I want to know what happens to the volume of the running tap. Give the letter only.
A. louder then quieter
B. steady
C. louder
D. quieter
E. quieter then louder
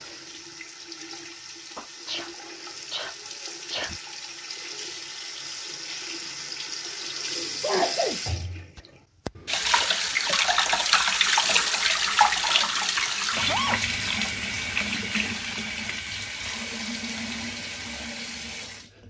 A.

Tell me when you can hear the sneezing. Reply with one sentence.
The sneezing can be heard from 1.8 to 2.3 s, from 2.9 to 4.0 s, from 7.6 to 8.2 s and from 13.3 to 14.3 s.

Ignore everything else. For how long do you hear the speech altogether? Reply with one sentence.
The speech can't be heard in this clip.